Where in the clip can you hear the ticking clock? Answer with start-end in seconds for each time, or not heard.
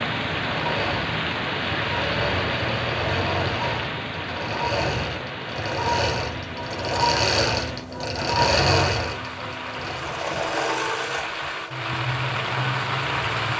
not heard.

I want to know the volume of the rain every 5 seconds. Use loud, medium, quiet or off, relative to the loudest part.
loud, medium, loud.